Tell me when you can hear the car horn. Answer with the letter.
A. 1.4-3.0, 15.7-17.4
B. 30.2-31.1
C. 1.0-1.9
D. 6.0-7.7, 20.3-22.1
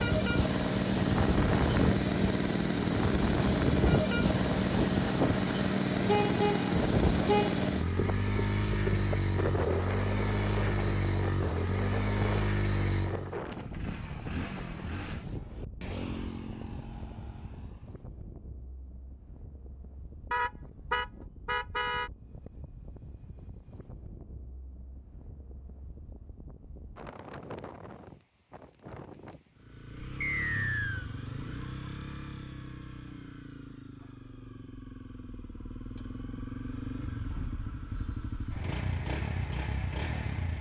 D.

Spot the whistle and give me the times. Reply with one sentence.
You can hear the whistle from 30.2 to 31.1 s.